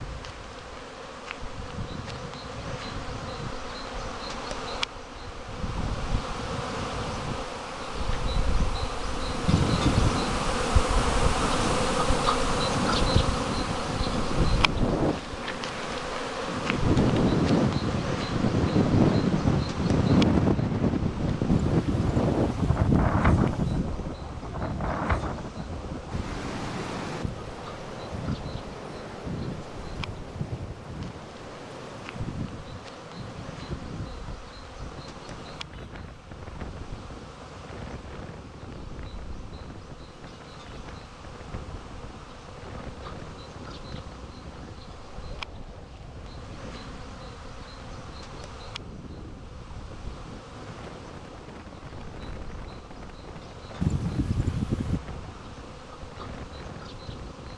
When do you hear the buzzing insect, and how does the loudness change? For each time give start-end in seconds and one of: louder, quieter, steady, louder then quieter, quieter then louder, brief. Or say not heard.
0.0-57.5 quieter.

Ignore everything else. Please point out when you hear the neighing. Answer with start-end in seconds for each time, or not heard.
9.4-10.2, 21.5-23.9, 53.8-55.0.